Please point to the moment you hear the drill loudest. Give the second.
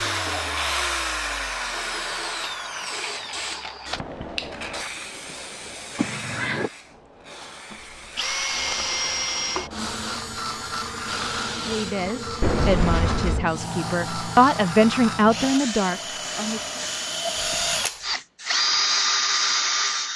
19 s.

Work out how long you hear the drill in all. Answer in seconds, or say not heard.
17 s.